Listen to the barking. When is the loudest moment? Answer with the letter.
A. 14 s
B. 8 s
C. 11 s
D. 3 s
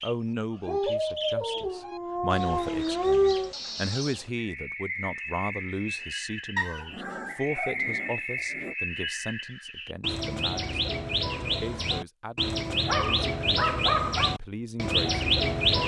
D.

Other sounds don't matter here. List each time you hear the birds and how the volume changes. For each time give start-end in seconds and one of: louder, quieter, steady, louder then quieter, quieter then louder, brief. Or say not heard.
0.0-15.8 louder.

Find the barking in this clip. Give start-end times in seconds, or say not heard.
0.7-3.5, 6.5-8.8, 12.8-14.3.